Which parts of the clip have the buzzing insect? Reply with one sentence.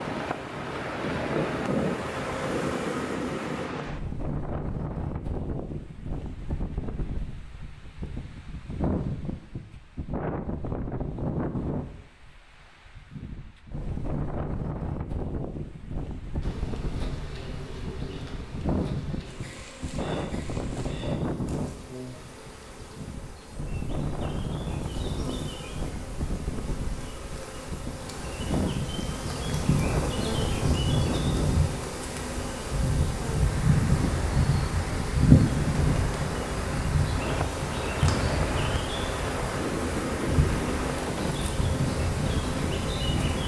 The buzzing insect can be heard from 0.2 to 3.7 s and from 16.4 to 43.4 s.